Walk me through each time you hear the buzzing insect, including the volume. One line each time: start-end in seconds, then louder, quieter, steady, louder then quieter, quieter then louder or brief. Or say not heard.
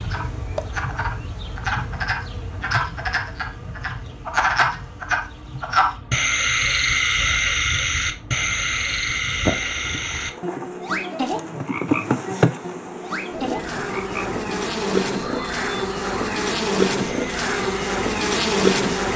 0.0-19.1 quieter then louder.